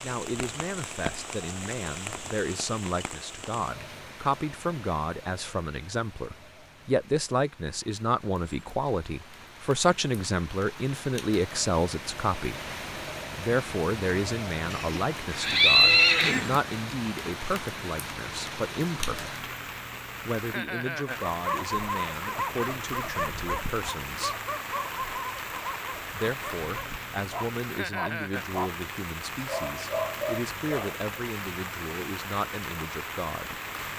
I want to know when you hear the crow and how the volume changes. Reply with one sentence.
The crow can't be heard in this clip.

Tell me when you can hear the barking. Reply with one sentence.
You can hear the barking from 21.1 to 28.7 s and from 29.4 to 31.2 s.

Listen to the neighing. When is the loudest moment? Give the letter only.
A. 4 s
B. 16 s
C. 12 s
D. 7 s
B.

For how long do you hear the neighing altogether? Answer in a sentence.
You can hear the neighing for 2 seconds altogether.